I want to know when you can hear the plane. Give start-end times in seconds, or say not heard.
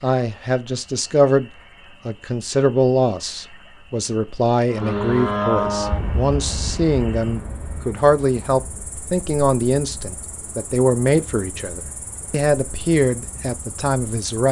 4.7-14.2.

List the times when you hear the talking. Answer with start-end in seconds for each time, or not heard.
0.0-14.4.